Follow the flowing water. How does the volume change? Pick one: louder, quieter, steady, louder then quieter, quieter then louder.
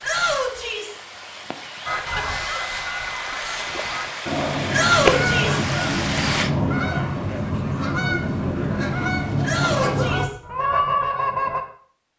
louder.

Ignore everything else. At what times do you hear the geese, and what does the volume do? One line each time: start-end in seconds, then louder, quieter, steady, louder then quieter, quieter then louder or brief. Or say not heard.
1.9-11.7 louder.